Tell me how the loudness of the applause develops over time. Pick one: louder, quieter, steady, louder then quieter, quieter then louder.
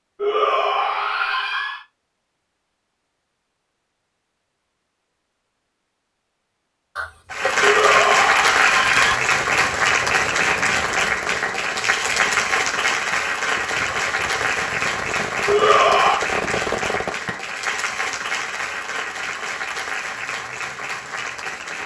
quieter.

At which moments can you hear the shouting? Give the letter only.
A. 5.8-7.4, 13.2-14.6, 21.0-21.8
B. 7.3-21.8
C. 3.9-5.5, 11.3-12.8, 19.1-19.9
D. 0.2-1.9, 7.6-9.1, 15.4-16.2
D.